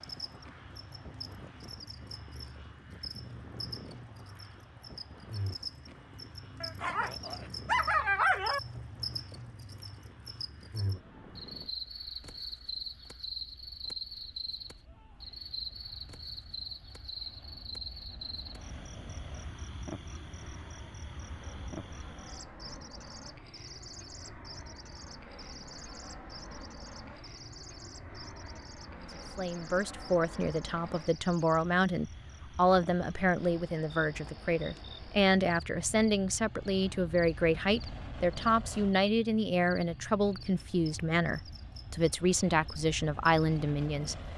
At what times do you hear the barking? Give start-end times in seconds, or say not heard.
6.6-8.6.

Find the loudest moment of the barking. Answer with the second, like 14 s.
8 s.